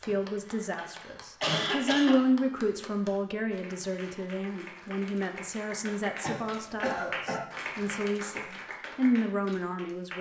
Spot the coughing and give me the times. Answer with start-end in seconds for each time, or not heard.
0.1-2.2, 6.2-7.4.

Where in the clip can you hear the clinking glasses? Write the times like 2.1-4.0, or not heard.
not heard.